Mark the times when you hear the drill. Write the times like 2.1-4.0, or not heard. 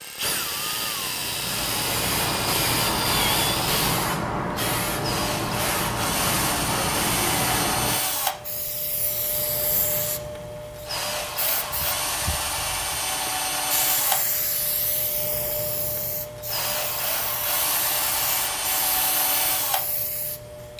0.0-20.7.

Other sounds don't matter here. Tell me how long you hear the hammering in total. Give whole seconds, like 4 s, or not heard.
not heard.